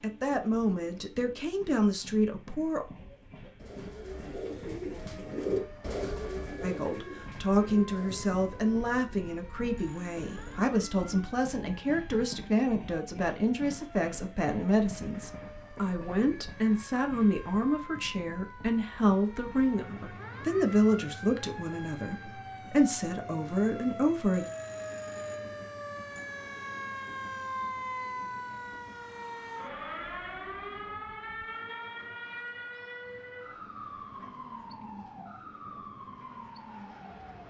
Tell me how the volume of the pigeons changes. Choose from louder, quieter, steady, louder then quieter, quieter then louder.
louder then quieter.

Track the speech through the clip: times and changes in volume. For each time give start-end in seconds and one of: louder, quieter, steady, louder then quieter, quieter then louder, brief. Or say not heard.
0.0-2.9 brief
6.6-24.4 steady.